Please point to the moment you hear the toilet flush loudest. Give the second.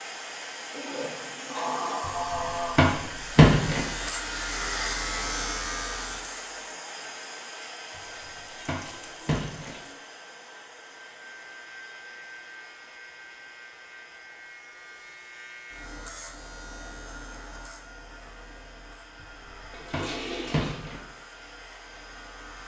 2 s.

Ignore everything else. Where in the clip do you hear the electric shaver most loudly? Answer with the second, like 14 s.
5 s.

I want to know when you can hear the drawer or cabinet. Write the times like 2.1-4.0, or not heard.
2.0-3.9, 8.0-9.8, 19.2-21.0.